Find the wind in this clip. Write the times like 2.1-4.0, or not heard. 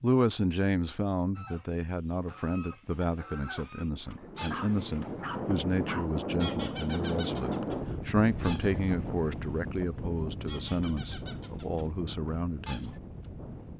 3.9-13.7.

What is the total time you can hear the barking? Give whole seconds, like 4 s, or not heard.
2 s.